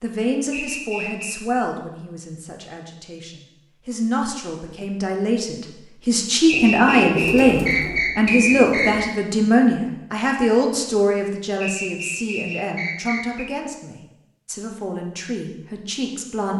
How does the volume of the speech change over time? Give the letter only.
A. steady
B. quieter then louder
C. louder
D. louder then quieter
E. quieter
D.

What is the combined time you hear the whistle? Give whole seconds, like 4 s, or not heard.
5 s.